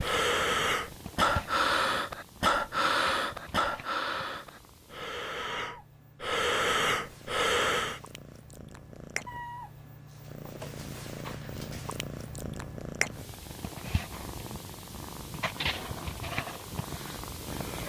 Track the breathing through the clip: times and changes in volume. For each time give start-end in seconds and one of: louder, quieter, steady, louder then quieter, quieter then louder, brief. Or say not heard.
0.0-8.0 quieter then louder.